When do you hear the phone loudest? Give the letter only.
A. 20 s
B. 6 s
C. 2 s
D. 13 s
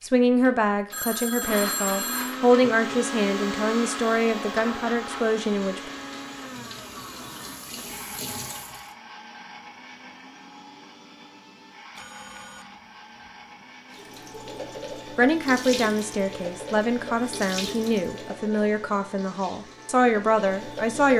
C.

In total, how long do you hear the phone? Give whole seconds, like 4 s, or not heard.
3 s.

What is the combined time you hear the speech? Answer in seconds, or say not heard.
12 s.